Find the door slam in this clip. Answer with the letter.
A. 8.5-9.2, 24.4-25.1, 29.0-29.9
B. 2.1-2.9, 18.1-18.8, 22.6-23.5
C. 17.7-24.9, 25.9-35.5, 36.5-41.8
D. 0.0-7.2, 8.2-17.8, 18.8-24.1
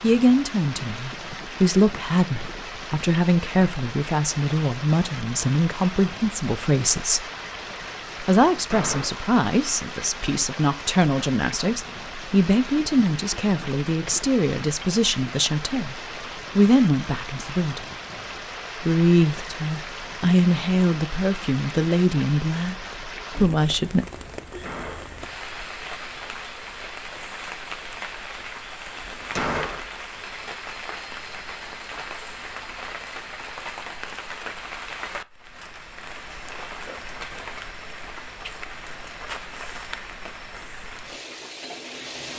A.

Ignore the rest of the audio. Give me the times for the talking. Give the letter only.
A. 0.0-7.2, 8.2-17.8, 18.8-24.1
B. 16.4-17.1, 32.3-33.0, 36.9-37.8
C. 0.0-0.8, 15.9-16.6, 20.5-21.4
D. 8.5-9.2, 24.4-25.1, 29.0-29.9
A.